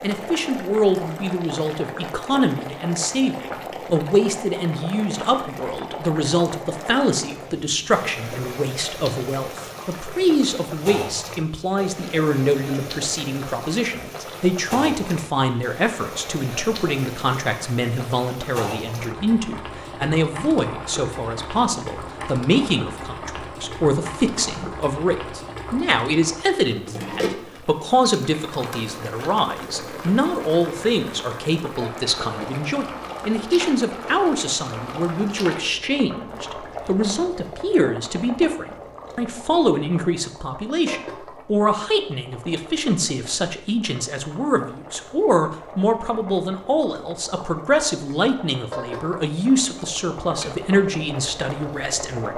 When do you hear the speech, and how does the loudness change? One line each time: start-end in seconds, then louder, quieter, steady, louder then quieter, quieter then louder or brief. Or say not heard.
0.0-52.3 steady.